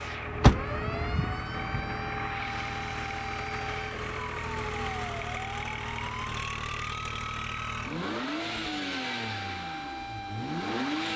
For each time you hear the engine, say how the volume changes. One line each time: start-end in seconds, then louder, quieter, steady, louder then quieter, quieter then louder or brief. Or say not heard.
0.0-11.1 steady.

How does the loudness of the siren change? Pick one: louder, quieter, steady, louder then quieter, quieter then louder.
steady.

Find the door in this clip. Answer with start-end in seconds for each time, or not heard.
0.4-1.8.